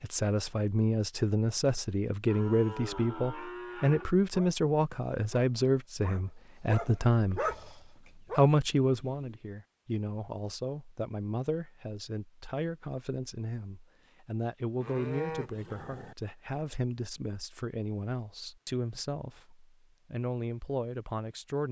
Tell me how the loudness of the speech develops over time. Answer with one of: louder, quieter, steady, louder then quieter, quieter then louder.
quieter.